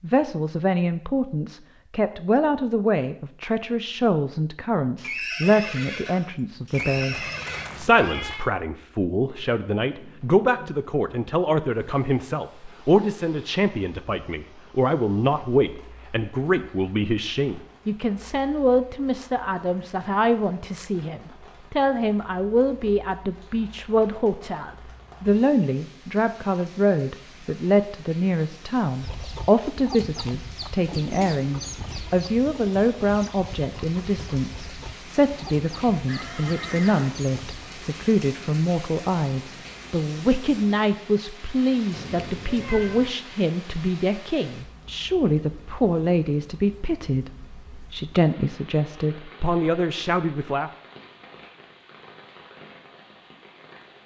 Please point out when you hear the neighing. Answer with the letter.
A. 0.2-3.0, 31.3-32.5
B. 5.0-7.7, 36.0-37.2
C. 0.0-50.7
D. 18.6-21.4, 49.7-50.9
B.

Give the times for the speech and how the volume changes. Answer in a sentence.
You can hear the speech from 0.0 to 50.7 s, at a steady volume.